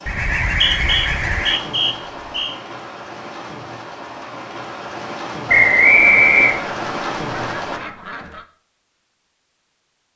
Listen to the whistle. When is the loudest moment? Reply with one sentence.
The loudest moment of the whistle is at 6 seconds.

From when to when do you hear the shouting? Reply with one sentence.
You can't hear the shouting here.